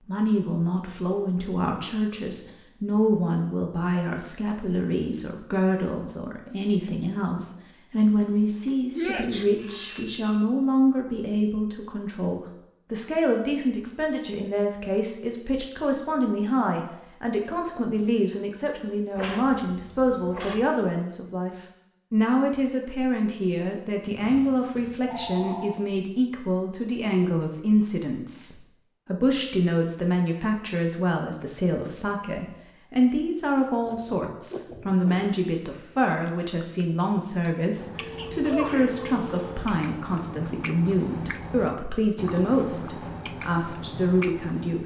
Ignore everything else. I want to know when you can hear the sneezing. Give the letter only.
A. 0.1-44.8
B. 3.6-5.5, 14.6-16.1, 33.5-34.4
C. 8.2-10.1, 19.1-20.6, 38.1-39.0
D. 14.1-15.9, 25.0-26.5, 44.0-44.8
C.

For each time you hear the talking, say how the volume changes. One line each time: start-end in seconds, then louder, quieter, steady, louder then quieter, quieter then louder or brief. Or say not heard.
0.1-44.8 steady.